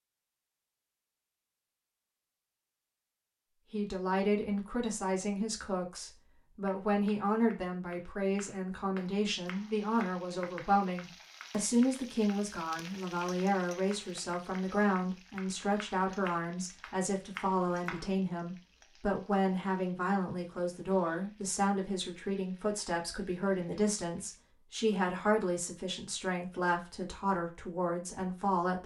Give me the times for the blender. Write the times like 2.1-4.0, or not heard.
not heard.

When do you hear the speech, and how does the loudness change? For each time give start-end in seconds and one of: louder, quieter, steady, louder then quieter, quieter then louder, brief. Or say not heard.
3.7-28.8 steady.